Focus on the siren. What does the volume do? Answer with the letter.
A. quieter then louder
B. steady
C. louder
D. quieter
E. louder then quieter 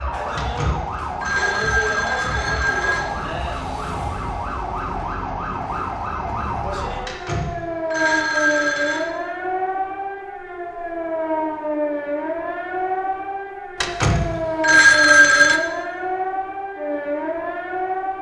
B.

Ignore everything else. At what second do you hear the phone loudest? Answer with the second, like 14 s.
15 s.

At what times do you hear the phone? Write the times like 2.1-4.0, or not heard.
0.3-3.1, 7.0-9.1, 13.8-15.6.